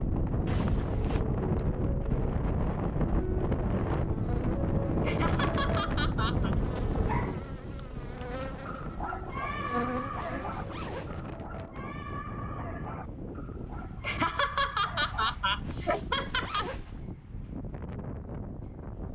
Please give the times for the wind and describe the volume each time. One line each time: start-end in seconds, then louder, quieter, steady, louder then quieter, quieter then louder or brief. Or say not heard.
0.0-19.1 quieter.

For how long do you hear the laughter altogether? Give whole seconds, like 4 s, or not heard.
4 s.